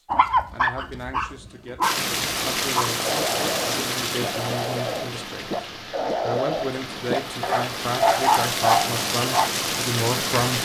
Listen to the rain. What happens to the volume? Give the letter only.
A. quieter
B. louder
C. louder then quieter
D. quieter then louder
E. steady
D.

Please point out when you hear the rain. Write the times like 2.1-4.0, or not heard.
1.8-10.5.